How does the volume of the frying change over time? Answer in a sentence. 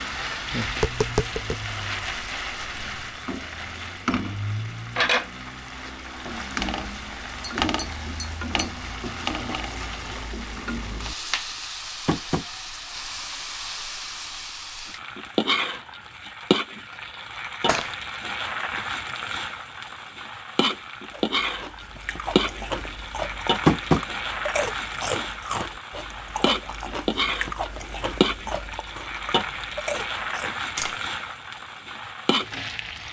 The volume of the frying stays about the same.